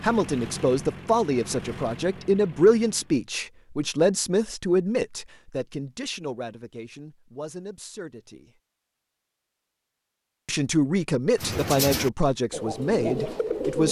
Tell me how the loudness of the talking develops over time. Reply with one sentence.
The volume of the talking goes down, then up.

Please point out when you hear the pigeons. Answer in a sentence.
You can hear the pigeons from 11.3 to 13.8 s.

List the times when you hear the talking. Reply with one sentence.
You can hear the talking from 0.0 to 8.5 s and from 10.4 to 13.8 s.